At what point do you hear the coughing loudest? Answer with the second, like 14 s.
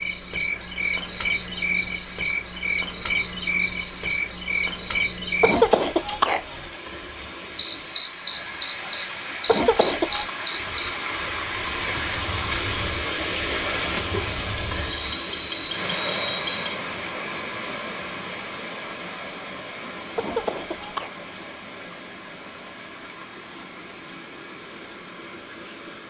6 s.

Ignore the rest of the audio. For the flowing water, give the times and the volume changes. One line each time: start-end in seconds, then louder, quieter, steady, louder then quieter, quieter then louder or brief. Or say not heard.
0.0-26.0 louder then quieter.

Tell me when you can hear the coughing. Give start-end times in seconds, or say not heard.
5.4-6.8, 9.4-10.3, 20.1-21.1.